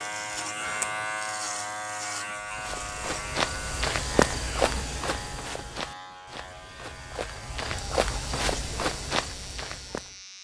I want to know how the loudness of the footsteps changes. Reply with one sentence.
The loudness of the footsteps goes down, then up.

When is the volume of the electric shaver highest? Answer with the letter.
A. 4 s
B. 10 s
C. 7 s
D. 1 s
D.